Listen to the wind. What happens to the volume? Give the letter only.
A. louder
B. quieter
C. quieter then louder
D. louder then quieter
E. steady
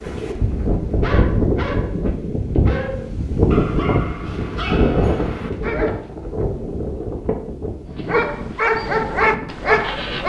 B.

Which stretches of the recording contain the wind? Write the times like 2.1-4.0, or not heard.
0.0-10.2.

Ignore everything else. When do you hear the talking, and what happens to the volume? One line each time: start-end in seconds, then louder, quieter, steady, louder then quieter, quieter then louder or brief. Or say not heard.
not heard.